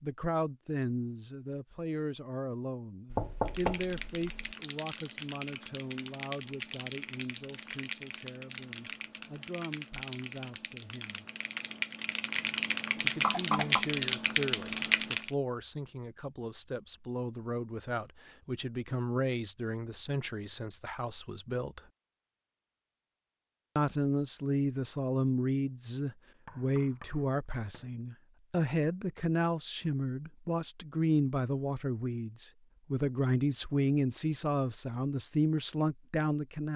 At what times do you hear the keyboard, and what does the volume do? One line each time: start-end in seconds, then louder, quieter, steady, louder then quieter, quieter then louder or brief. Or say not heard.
3.5-15.3 louder.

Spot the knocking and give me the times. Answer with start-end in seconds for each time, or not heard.
3.1-4.3, 13.2-13.8, 26.4-27.9.